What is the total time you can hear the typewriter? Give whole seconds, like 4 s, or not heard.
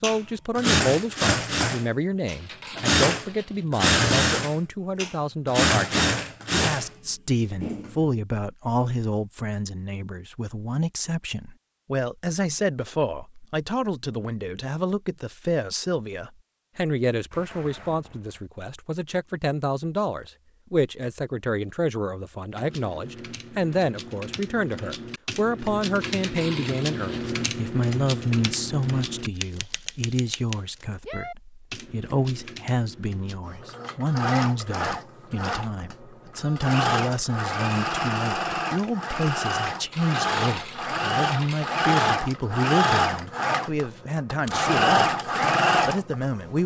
11 s.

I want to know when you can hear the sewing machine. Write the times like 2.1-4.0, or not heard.
0.0-8.1, 33.5-46.2.